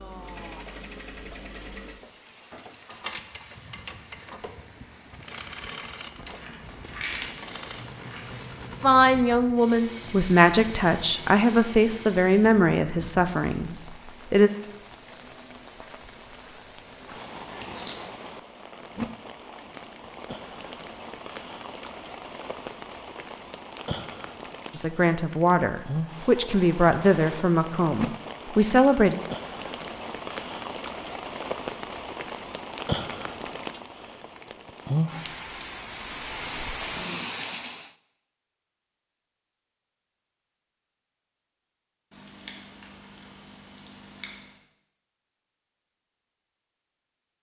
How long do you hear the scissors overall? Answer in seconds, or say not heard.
6 s.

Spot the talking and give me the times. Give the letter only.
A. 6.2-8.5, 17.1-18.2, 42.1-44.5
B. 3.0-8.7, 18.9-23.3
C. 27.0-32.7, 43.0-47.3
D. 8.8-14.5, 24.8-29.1
D.